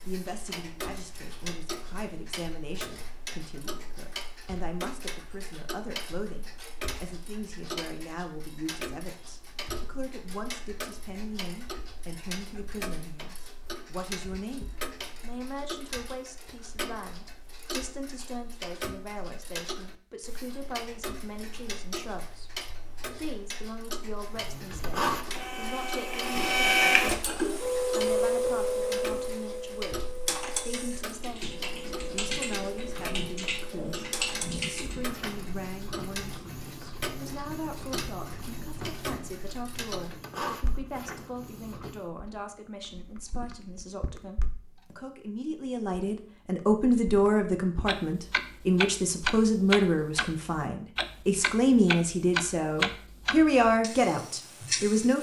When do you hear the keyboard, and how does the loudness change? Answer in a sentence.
The keyboard can be heard from 30.2 to 35.1 s, getting louder.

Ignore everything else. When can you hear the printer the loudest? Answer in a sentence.
The volume of the printer peaks at 27 seconds.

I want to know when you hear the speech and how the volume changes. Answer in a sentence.
The speech can be heard from 0.0 to 55.1 s, getting louder.